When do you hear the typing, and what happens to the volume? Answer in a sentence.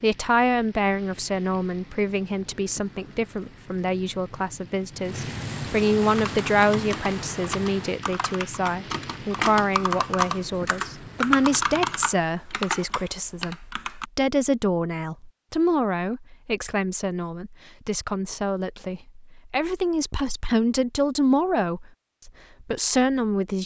You can hear the typing from 6.0 to 14.1 s, getting louder then quieter.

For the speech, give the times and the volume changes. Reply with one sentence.
You can hear the speech from 0.0 to 23.6 s, at a steady volume.